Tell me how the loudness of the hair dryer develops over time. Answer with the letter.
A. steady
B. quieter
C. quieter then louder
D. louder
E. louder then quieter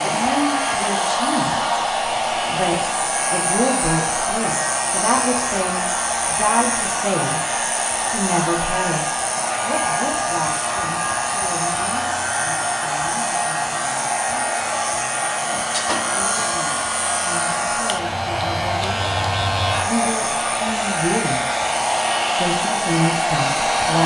A.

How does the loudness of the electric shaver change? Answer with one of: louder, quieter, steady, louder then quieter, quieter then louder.
steady.